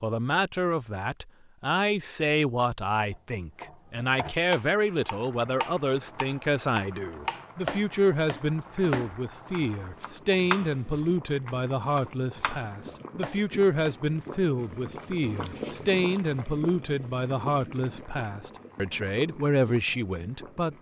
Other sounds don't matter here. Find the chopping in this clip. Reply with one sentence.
The chopping can be heard from 3.1 to 14.0 s.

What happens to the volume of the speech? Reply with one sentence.
The volume of the speech stays about the same.